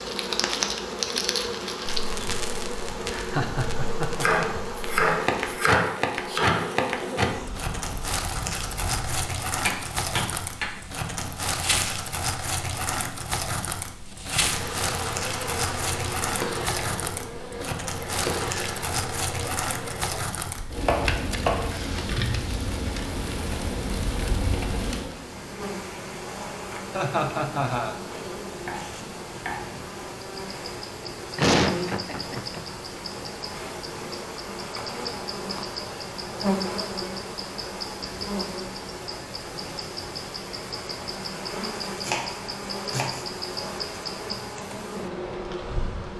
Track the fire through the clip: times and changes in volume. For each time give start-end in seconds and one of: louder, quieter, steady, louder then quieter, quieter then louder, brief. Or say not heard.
0.0-25.2 steady.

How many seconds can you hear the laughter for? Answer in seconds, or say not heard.
4 s.